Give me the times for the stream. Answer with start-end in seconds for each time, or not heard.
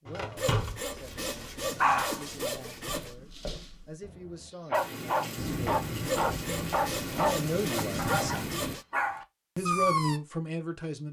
not heard.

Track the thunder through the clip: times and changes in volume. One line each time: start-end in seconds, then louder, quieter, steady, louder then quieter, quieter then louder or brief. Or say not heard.
4.7-8.8 steady.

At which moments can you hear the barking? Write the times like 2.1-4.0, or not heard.
0.1-10.2.